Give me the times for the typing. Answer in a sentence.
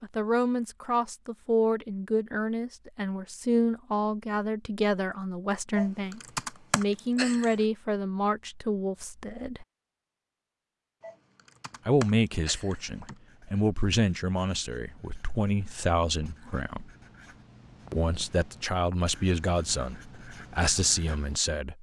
The typing can be heard from 5.8 to 7.7 s and from 11.0 to 13.2 s.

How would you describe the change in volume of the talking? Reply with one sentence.
The volume of the talking stays about the same.